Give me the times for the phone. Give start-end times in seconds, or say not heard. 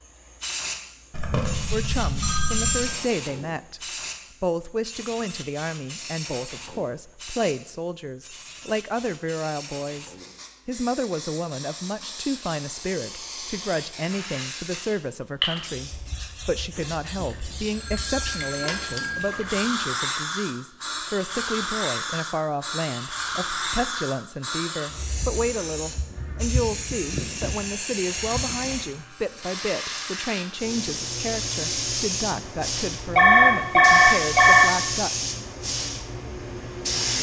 1.1-3.0, 16.8-19.4, 33.1-34.7.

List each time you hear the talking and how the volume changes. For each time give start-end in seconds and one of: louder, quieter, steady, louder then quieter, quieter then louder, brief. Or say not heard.
1.7-3.8 brief
4.4-35.1 steady.